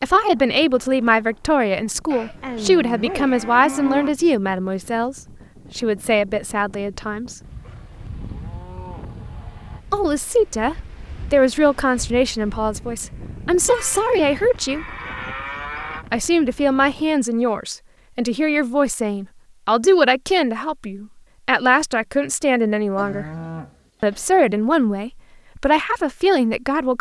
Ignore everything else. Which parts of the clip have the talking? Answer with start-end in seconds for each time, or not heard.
0.0-7.3, 9.9-14.8, 16.1-23.2, 24.0-26.9.